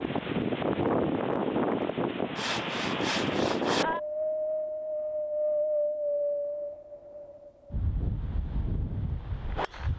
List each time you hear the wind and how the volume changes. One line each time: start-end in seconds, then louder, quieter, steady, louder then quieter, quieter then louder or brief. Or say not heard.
0.0-9.9 quieter.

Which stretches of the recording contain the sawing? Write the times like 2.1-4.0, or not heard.
2.4-4.0.